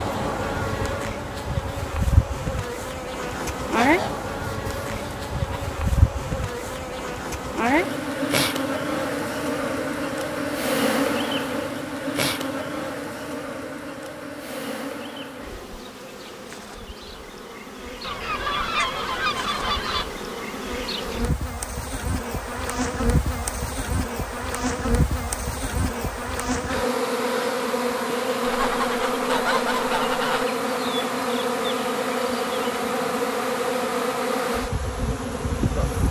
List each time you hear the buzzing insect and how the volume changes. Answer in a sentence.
The buzzing insect can be heard from 0.0 to 36.0 s, getting quieter then louder.